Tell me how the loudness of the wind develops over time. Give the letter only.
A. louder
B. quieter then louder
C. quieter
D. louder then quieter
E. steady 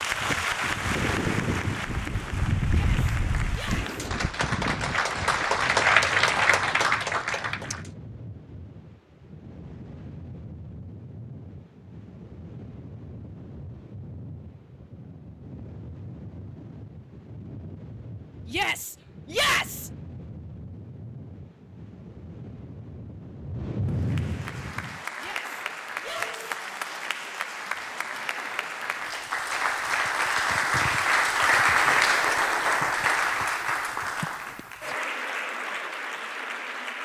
B.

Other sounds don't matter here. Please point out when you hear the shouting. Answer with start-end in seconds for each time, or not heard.
2.7-4.0, 18.4-19.9, 25.1-26.4.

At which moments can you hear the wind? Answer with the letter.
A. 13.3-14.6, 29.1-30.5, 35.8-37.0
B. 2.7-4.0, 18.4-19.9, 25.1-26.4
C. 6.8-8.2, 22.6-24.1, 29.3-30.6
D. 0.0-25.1
D.